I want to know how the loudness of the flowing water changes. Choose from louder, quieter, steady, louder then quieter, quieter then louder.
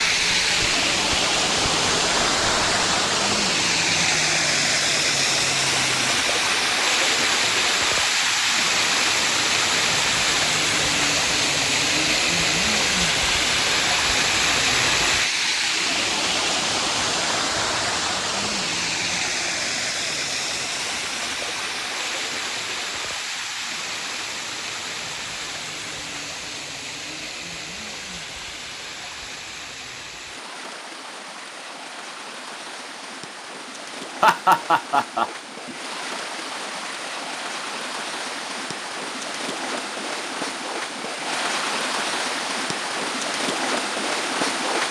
quieter then louder.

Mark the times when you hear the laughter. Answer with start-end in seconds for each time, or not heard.
34.2-35.8.